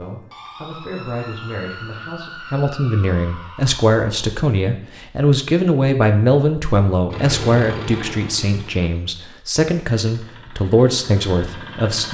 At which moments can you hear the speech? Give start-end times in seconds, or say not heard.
0.0-12.0.